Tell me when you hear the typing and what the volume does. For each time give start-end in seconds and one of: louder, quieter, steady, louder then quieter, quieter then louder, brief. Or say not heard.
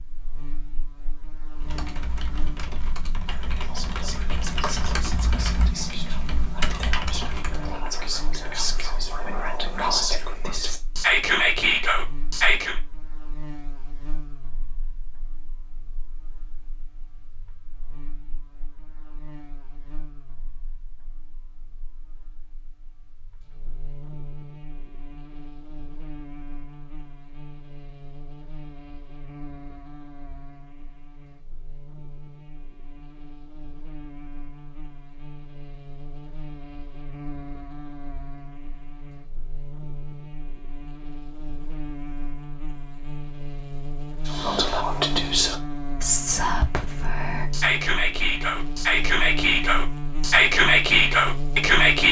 1.6-7.8 louder.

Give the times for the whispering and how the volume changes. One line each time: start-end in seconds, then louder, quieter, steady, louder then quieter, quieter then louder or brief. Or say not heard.
3.2-12.8 louder
44.2-52.0 louder.